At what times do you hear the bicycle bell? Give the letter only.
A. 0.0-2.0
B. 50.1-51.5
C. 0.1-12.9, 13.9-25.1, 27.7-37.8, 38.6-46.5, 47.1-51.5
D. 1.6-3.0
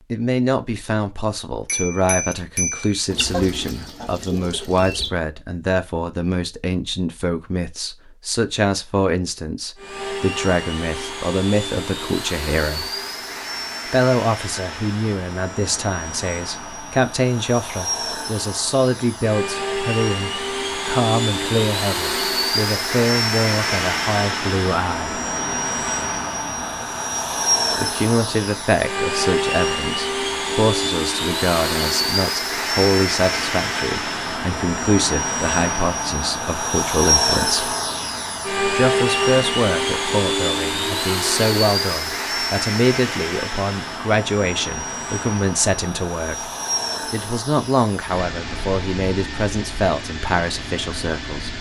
D.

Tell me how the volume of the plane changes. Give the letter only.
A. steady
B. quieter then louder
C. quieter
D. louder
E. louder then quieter
E.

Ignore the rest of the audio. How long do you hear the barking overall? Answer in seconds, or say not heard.
not heard.